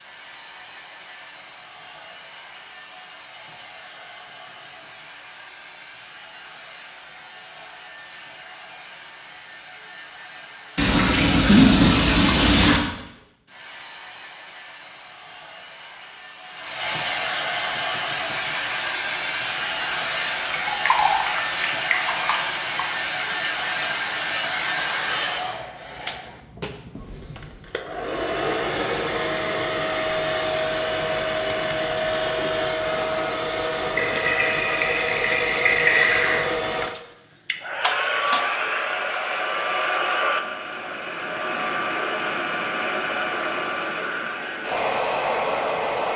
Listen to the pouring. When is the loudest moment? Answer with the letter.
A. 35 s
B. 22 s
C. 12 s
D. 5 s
C.